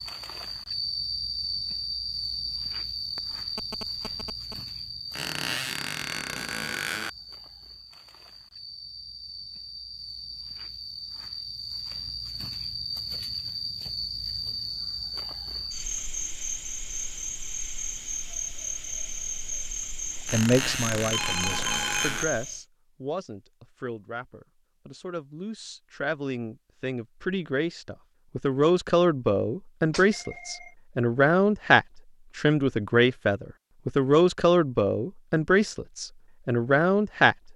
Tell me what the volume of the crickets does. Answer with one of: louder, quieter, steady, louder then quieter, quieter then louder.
quieter then louder.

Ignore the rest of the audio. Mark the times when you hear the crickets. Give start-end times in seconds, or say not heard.
0.0-22.6.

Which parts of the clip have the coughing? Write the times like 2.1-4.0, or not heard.
not heard.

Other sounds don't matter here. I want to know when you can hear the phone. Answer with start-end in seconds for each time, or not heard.
3.1-4.5, 21.1-22.3, 29.9-30.7.